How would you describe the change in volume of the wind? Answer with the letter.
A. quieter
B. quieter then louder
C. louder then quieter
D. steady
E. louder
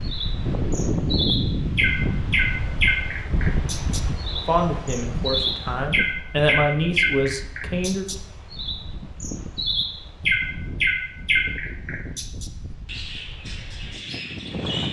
A.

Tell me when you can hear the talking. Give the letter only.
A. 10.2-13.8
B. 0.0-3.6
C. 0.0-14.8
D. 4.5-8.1
D.